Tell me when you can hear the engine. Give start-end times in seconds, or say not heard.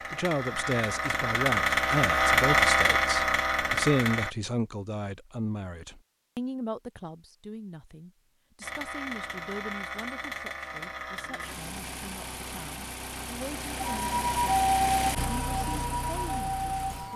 0.0-4.3, 8.6-17.1.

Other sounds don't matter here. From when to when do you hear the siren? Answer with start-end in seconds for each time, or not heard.
13.8-17.1.